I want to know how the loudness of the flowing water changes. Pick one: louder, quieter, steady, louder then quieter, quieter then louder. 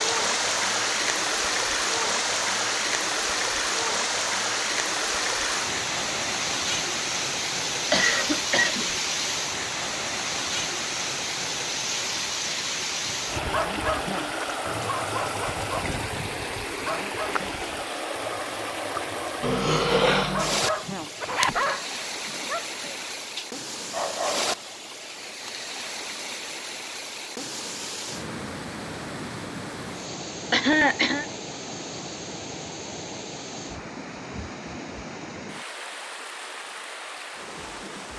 quieter.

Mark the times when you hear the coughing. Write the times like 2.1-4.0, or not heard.
7.9-8.9, 19.4-20.6, 30.5-31.2.